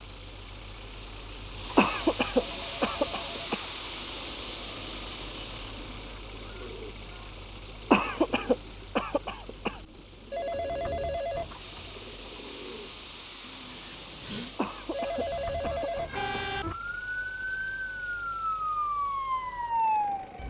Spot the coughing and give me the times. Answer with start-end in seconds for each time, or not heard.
1.8-3.6, 7.9-9.8, 14.6-16.2.